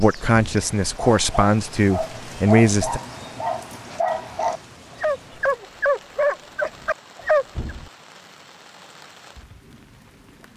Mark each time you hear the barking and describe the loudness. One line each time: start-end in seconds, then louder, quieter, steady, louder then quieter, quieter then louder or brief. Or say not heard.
0.4-7.8 louder.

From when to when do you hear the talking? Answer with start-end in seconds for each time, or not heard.
0.0-3.0.